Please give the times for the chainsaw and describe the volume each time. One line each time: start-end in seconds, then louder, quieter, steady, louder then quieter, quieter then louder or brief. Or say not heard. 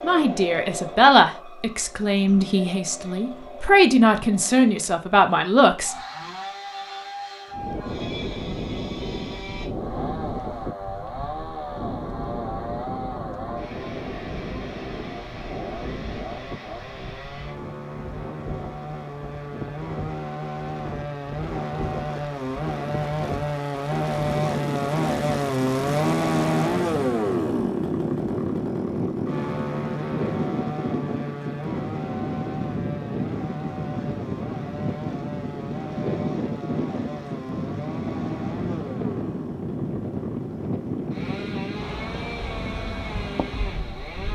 0.0-44.3 louder then quieter.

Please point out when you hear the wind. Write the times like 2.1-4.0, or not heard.
7.5-44.3.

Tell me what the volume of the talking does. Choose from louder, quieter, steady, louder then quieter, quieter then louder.
quieter then louder.